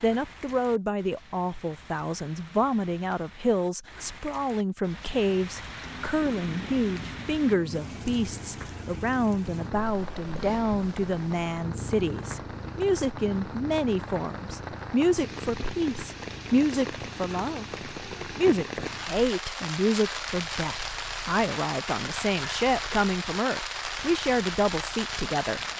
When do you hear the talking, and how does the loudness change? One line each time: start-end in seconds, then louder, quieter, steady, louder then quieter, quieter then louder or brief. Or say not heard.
0.0-25.6 steady.